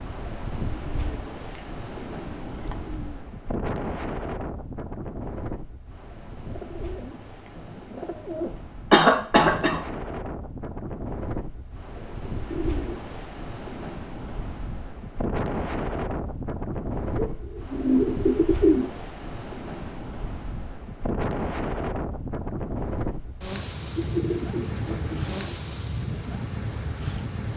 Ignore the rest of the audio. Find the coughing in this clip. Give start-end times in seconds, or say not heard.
8.9-9.8.